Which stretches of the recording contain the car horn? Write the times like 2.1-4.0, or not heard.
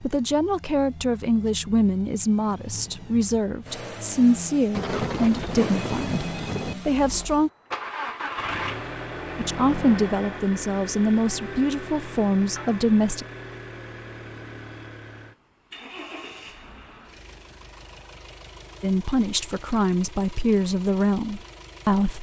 not heard.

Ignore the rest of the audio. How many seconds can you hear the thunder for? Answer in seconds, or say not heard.
2 s.